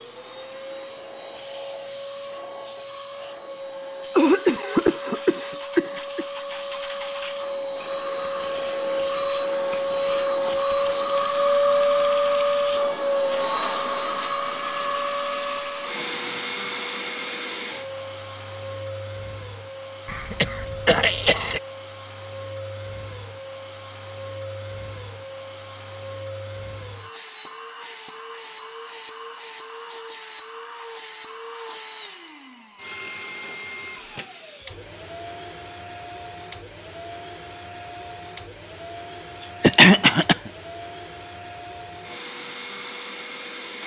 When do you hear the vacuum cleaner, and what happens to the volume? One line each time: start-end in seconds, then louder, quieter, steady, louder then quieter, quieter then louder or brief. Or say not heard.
0.0-43.8 louder then quieter.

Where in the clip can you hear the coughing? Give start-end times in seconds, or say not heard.
4.2-6.2, 20.1-21.6, 39.6-40.4.